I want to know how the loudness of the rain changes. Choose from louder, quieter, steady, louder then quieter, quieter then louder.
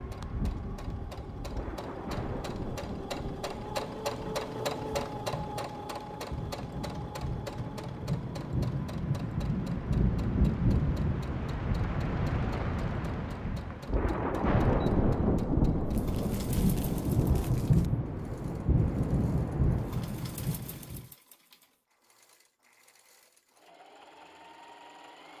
louder.